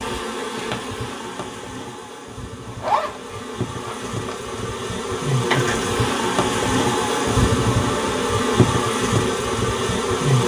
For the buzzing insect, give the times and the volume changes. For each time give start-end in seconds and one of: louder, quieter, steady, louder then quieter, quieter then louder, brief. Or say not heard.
0.0-10.4 louder.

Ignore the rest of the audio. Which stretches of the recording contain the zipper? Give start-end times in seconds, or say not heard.
2.6-4.5.